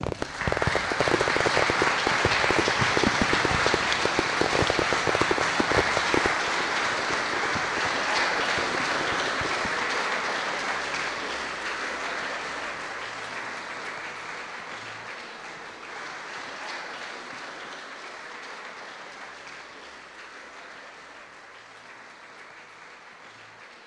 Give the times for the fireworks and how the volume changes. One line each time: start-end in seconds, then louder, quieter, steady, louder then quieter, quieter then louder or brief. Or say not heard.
0.0-9.8 quieter.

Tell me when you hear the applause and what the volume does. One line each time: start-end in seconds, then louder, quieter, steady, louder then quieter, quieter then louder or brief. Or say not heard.
0.0-23.8 quieter.